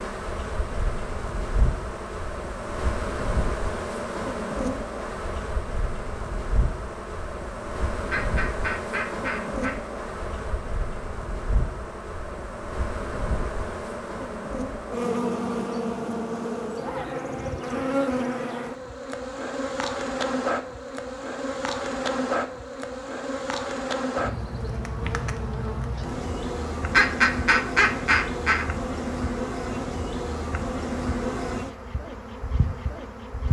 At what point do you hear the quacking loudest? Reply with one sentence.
The loudest moment of the quacking is at 27 seconds.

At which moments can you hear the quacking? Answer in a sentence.
The quacking can be heard from 8.1 to 9.8 s and from 26.9 to 28.7 s.